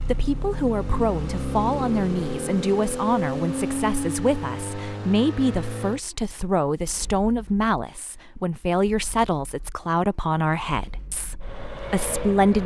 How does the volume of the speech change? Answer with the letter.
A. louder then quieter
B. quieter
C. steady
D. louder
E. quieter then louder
C.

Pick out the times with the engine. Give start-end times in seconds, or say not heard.
0.0-12.6.